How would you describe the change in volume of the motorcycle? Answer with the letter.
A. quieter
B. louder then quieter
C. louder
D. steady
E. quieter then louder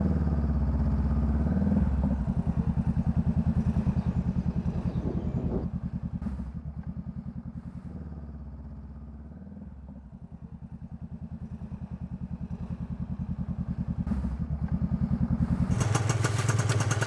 E.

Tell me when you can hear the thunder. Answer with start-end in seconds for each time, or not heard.
3.8-5.7.